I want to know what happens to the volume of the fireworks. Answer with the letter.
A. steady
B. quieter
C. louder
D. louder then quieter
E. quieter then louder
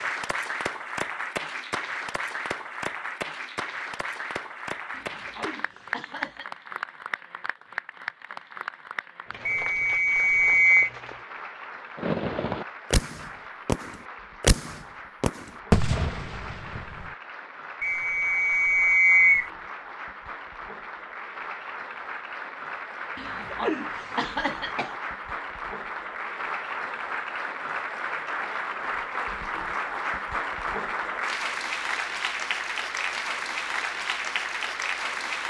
D.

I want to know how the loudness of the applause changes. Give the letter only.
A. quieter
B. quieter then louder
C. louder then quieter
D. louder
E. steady
B.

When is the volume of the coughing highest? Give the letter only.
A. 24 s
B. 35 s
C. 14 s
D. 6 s
A.